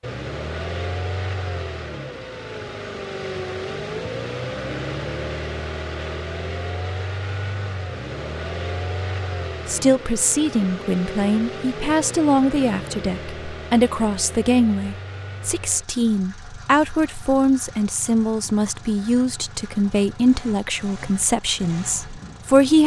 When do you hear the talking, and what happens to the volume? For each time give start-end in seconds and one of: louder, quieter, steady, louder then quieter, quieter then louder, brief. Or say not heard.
9.7-22.8 steady.